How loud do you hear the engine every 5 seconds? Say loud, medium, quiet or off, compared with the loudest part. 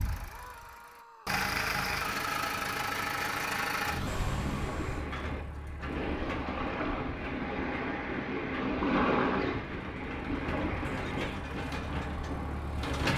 loud, medium, loud.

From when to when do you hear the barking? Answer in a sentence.
The barking can't be heard in this clip.